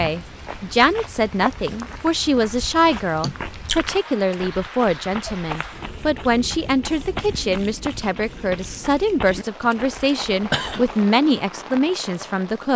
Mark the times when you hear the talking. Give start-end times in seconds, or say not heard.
0.0-12.7.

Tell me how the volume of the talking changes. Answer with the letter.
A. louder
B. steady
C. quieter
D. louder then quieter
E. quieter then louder
B.